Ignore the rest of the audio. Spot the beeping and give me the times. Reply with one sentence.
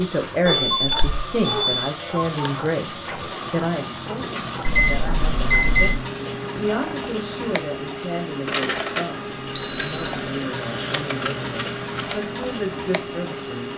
The beeping can be heard from 0.5 to 1.8 s, from 4.7 to 6.0 s and from 9.6 to 10.2 s.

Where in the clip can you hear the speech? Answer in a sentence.
The speech can be heard from 0.0 to 13.7 s.